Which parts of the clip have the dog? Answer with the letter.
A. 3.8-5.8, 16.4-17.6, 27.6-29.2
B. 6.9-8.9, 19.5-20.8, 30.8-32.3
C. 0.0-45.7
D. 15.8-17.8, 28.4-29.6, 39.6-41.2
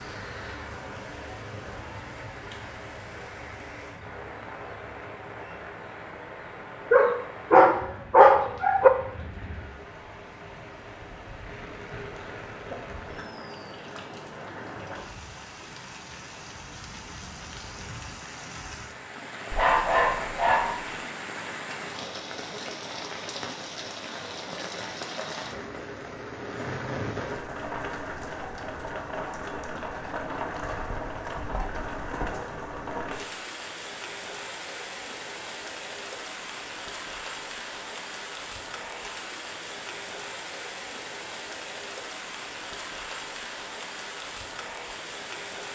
B.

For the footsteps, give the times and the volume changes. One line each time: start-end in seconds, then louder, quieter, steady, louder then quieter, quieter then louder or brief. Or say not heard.
not heard.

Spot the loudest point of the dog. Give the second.
8 s.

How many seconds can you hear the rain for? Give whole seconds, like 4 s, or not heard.
46 s.